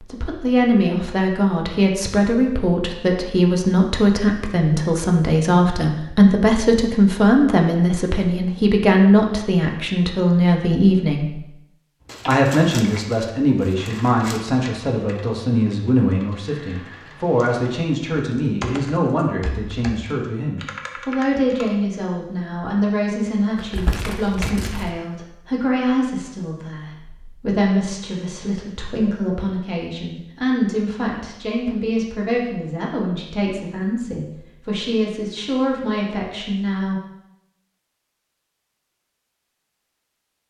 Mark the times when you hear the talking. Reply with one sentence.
The talking can be heard from 0.0 to 11.4 s and from 12.2 to 37.0 s.